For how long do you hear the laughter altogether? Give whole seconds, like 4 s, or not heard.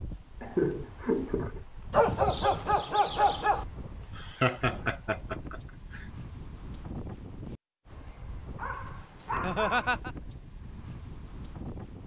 4 s.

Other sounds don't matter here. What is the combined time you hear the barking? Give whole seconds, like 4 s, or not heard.
3 s.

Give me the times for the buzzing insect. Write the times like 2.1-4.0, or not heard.
not heard.